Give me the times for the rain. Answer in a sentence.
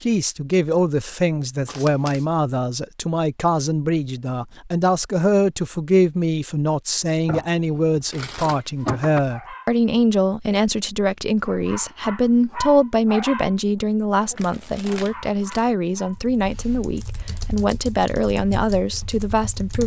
You can't hear the rain here.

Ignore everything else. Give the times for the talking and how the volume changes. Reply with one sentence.
You can hear the talking from 0.0 to 19.8 s, at a steady volume.